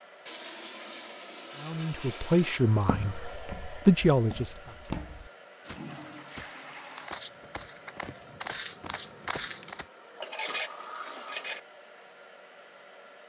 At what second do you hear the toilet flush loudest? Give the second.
11 s.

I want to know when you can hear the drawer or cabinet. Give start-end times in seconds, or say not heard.
not heard.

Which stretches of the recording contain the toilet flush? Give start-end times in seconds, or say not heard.
0.2-2.6, 4.8-7.2, 9.6-11.6.